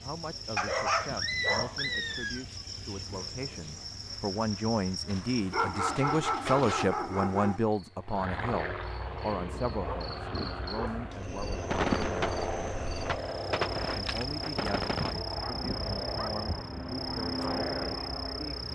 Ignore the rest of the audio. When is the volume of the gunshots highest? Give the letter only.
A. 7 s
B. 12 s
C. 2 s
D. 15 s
B.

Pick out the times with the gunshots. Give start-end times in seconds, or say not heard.
11.7-15.2.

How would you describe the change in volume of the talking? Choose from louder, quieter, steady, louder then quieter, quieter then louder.
louder then quieter.